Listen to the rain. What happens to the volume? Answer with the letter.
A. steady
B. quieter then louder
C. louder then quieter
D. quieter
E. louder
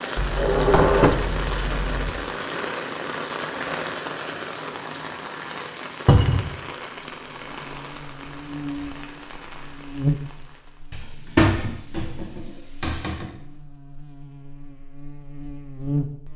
D.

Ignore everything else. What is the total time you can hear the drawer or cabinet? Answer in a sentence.
You can hear the drawer or cabinet for 5 seconds altogether.